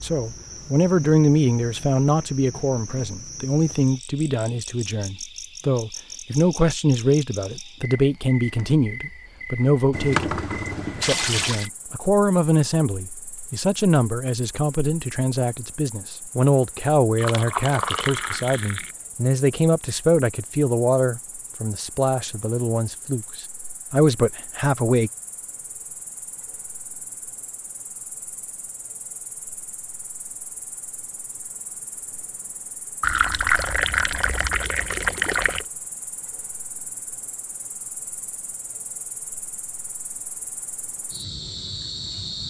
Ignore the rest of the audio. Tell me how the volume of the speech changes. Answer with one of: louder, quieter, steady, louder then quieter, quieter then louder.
steady.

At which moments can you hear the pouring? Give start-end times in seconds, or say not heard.
9.9-11.7, 17.1-18.9, 33.0-35.6.